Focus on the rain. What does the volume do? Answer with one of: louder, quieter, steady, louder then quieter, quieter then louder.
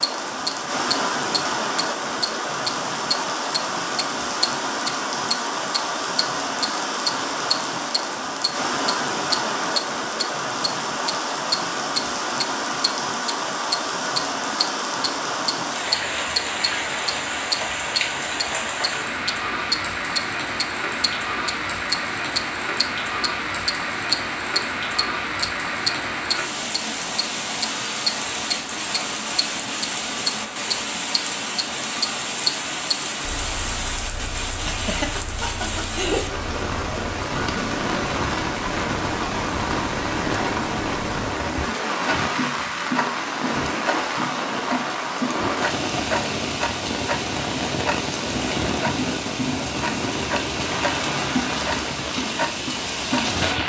steady.